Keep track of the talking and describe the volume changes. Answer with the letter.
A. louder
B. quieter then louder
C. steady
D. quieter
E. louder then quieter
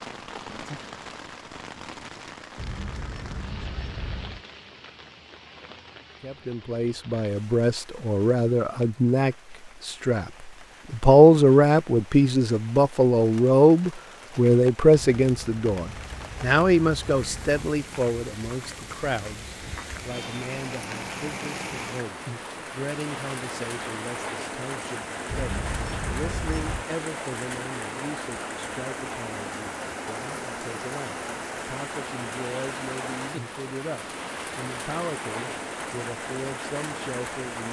D.